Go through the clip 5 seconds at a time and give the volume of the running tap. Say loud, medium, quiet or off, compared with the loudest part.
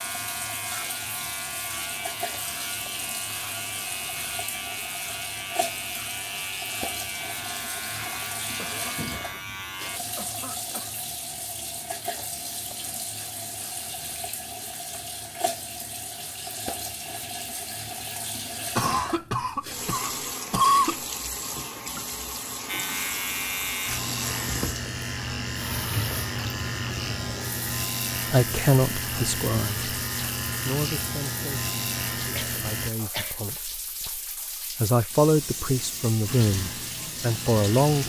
loud, loud, loud, loud, loud, loud, medium, loud.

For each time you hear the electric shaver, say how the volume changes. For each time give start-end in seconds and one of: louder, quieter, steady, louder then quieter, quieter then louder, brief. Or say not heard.
0.0-10.0 steady
22.6-32.9 steady
36.2-38.0 brief.